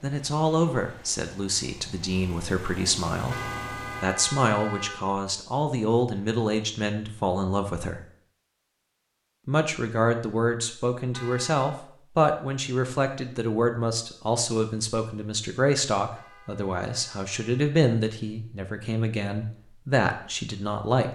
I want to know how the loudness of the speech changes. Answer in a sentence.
The volume of the speech stays about the same.